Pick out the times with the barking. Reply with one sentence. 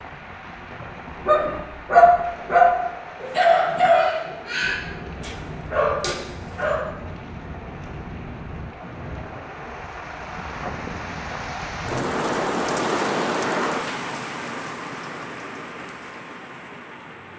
The barking can be heard from 1.2 to 6.8 s.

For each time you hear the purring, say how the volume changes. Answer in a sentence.
The purring can't be heard in this clip.